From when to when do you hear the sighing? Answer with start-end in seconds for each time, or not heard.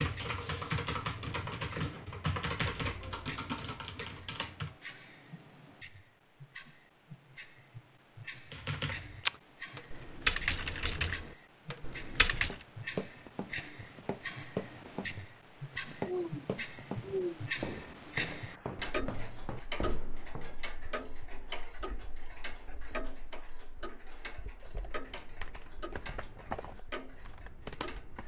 16.1-17.5.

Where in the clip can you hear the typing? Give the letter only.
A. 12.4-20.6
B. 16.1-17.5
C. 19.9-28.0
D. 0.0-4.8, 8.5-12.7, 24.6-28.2
D.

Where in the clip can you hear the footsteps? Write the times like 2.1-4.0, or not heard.
12.4-20.6.